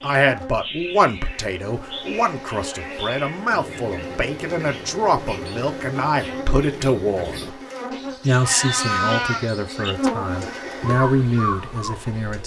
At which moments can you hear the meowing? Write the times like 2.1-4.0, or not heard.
8.3-9.5.